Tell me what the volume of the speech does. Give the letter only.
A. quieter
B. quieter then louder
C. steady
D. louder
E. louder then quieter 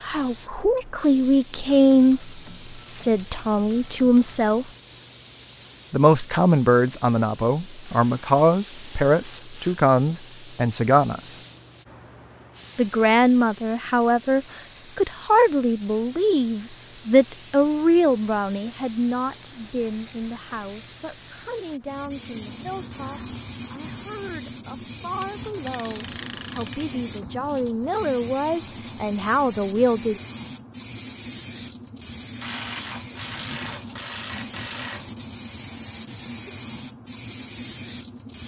B.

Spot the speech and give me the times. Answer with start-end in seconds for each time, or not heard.
0.0-4.7, 5.9-11.3, 12.8-30.1.